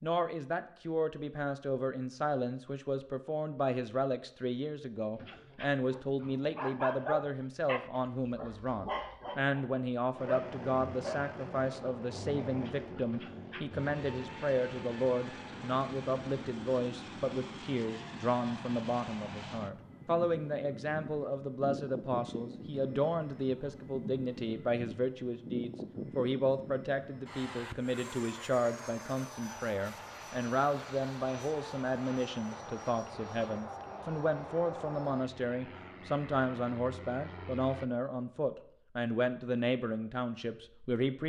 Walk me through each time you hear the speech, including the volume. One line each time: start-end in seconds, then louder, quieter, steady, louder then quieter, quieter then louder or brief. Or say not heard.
0.0-41.2 steady.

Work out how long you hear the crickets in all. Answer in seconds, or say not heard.
not heard.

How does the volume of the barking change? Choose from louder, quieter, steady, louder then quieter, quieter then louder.
louder then quieter.